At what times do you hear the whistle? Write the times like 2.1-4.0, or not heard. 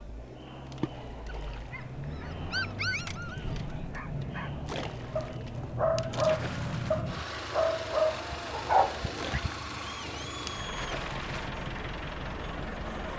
not heard.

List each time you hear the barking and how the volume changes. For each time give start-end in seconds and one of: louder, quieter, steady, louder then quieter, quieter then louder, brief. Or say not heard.
1.2-9.4 quieter then louder.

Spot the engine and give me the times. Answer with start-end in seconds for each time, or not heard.
0.0-13.1.